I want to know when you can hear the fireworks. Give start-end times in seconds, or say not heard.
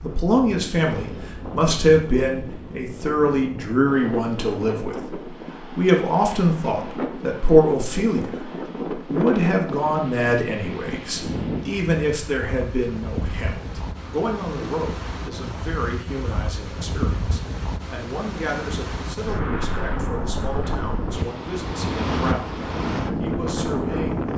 not heard.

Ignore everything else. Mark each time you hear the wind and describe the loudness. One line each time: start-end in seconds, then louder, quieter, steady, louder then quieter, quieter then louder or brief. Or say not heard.
0.0-24.3 louder.